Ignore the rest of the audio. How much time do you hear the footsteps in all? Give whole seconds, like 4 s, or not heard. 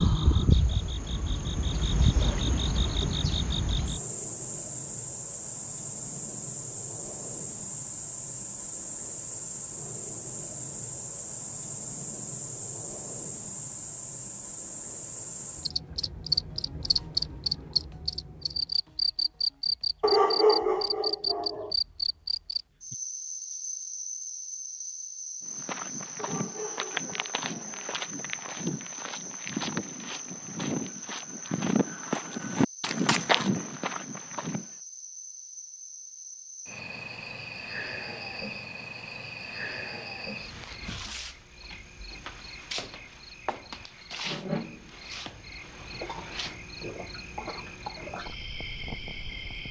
9 s.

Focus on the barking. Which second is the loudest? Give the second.
20 s.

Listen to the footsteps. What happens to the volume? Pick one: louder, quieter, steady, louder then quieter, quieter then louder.
louder.